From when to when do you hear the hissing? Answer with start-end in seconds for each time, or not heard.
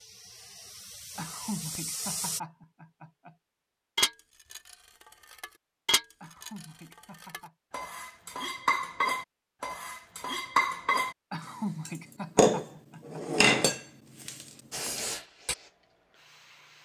0.0-2.4, 14.7-16.8.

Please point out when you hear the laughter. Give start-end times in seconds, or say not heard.
1.1-3.4, 6.2-7.5, 11.3-13.2.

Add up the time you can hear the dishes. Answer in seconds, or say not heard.
11 s.